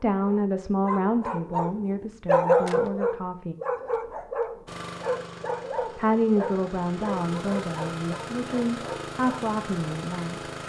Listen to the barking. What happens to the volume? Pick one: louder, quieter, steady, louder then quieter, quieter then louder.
louder then quieter.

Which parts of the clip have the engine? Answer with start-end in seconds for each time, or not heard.
4.7-10.6.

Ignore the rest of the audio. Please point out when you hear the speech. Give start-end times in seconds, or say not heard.
0.0-3.5, 6.0-10.4.